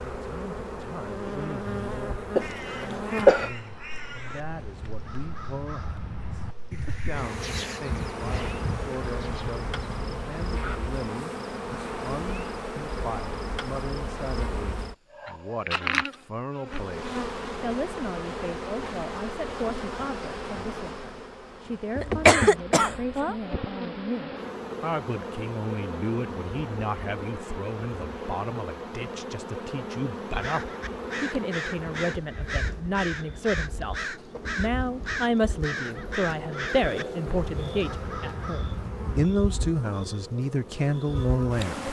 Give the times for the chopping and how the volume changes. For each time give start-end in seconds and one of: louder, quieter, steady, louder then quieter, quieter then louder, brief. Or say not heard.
not heard.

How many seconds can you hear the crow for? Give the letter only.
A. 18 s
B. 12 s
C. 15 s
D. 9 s
A.